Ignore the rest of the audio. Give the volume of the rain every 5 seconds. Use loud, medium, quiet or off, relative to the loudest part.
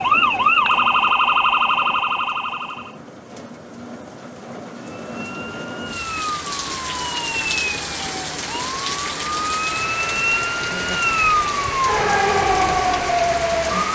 medium, loud, loud.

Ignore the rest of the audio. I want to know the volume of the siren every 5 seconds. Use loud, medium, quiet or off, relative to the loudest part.
loud, medium, loud.